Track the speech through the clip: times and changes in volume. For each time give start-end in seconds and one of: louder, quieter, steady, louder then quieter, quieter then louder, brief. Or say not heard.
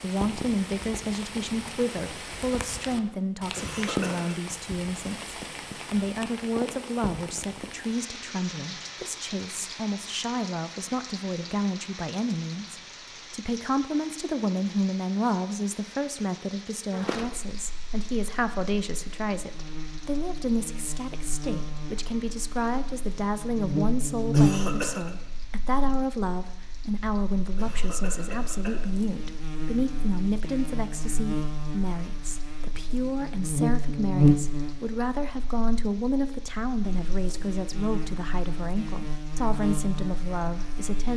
0.0-41.1 steady.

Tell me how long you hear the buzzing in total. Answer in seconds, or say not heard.
24 s.